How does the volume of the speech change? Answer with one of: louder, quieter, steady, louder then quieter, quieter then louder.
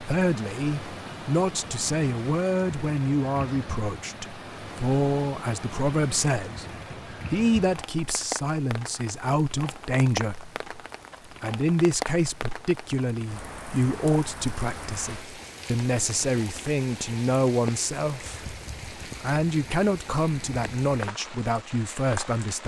steady.